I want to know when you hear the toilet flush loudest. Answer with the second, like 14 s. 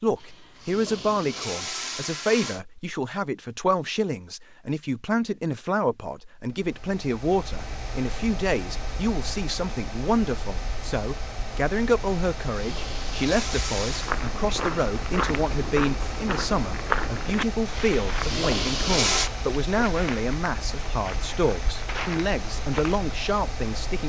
19 s.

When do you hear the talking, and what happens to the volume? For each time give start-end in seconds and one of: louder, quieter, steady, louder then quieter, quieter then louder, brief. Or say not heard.
0.0-24.0 steady.